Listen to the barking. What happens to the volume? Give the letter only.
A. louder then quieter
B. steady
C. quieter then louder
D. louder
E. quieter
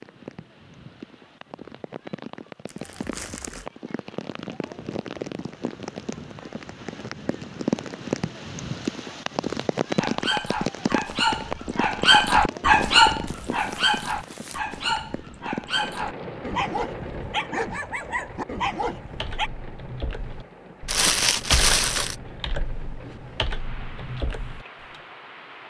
A.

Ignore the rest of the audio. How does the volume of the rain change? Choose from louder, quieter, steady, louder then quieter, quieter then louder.
louder then quieter.